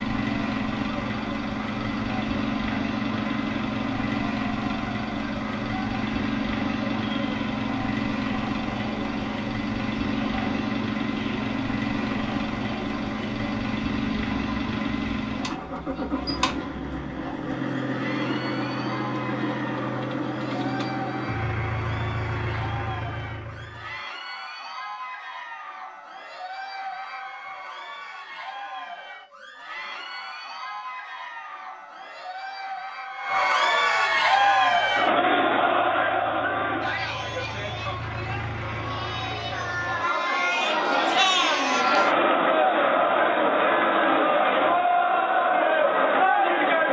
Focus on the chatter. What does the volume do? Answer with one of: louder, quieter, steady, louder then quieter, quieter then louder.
louder.